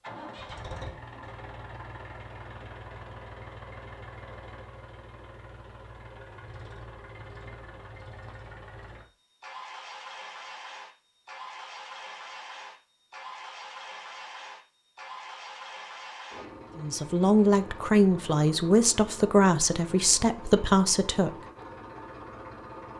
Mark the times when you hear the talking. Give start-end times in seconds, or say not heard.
16.8-21.4.